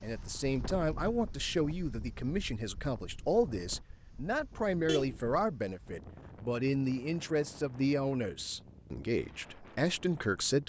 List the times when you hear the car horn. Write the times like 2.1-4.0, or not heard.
4.8-5.2.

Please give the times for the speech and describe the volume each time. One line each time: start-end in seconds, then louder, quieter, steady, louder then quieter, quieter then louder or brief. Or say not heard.
0.0-10.6 steady.